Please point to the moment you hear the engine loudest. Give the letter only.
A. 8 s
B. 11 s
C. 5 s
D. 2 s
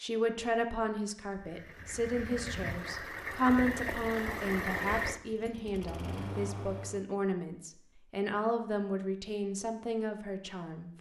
C.